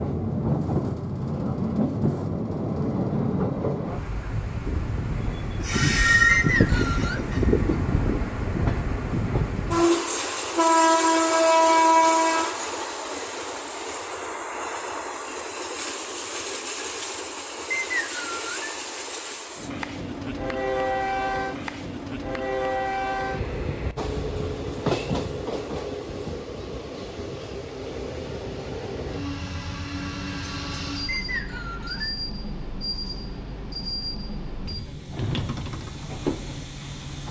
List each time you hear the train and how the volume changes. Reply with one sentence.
The train can be heard from 0.0 to 37.2 s, getting quieter.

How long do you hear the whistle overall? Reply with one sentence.
The whistle can be heard for 3 seconds in total.